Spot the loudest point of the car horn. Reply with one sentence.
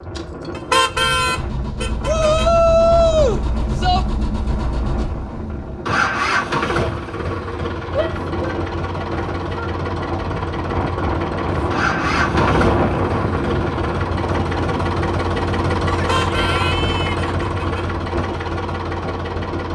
The loudest moment of the car horn is at 1 second.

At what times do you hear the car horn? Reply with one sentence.
The car horn can be heard from 0.6 to 2.5 s and from 15.9 to 17.9 s.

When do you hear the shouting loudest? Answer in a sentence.
The loudest moment of the shouting is at 3 seconds.